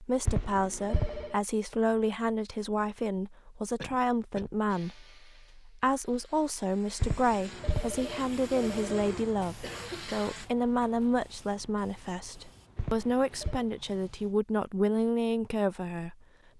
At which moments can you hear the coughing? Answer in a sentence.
The coughing can be heard from 3.8 to 4.5 s and from 9.6 to 10.2 s.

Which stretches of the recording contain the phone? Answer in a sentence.
The phone can be heard from 0.2 to 1.4 s, from 7.0 to 9.1 s and from 12.8 to 13.7 s.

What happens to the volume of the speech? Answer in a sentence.
The loudness of the speech stays about the same.